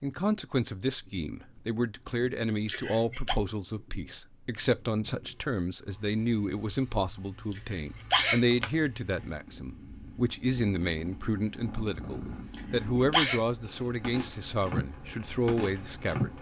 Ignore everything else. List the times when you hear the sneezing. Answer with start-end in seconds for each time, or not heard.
2.6-3.4, 7.5-8.7, 12.5-13.4.